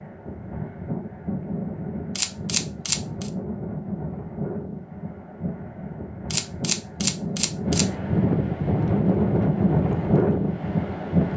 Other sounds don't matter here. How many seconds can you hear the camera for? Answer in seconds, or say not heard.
3 s.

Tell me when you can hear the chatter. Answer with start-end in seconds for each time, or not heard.
not heard.